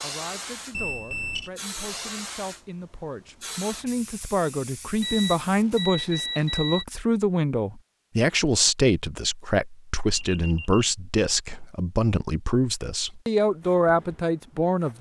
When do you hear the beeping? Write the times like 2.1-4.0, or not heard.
0.7-1.5, 5.0-6.8, 10.1-10.8.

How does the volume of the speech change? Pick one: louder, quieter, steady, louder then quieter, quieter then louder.
louder.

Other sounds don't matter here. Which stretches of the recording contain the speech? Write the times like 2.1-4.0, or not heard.
0.0-14.9.